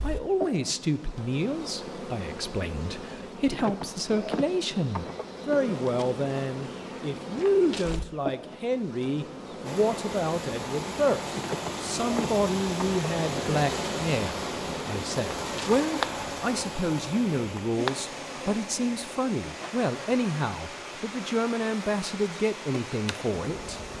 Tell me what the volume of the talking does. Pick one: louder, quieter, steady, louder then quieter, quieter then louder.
steady.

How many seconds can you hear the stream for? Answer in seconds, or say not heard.
14 s.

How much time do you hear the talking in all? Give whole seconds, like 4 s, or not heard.
24 s.